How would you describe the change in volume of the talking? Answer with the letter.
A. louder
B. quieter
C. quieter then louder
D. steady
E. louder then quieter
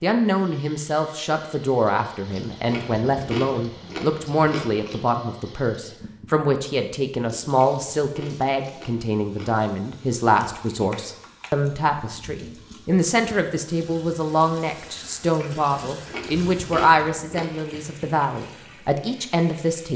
D.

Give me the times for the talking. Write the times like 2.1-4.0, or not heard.
0.0-19.9.